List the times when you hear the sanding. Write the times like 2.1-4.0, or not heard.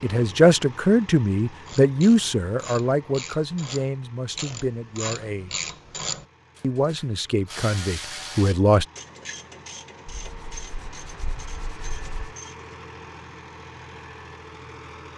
10.1-12.3.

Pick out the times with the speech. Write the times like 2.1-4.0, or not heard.
0.0-5.5, 6.6-8.8.